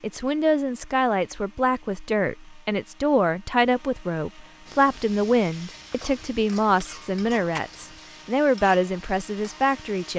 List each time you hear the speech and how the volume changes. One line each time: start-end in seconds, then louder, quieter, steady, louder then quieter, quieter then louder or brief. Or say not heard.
0.0-10.1 steady.